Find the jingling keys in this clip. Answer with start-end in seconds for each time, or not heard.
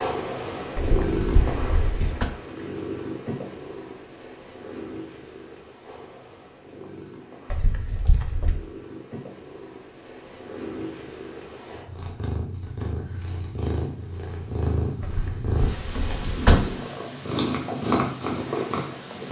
0.8-2.3, 7.5-8.6, 15.0-16.7.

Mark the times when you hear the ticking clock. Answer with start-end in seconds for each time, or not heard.
not heard.